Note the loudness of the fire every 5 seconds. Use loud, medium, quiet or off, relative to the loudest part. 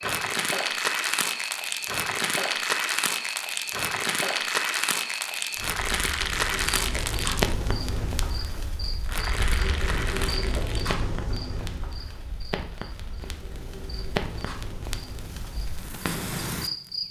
loud, loud, medium, medium.